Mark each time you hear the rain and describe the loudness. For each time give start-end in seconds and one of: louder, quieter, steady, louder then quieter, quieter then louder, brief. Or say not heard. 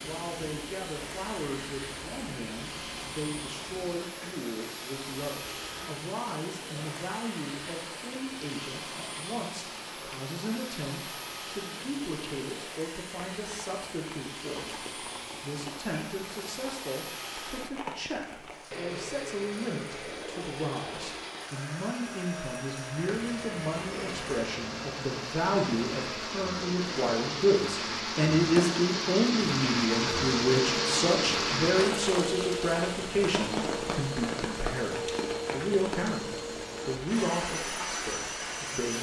0.0-38.9 louder.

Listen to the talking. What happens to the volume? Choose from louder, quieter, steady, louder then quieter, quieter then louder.
louder.